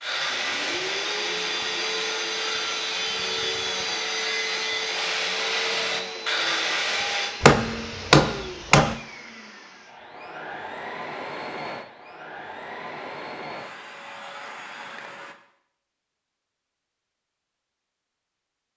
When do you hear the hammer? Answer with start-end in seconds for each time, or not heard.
7.4-8.9.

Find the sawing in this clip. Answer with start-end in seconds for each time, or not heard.
0.0-7.3.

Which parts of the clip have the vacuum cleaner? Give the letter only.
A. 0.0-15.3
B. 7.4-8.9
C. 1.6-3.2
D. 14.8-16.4
A.